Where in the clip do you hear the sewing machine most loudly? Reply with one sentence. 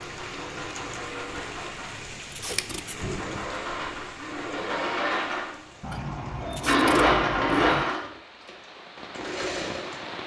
The loudest moment of the sewing machine is at 7 seconds.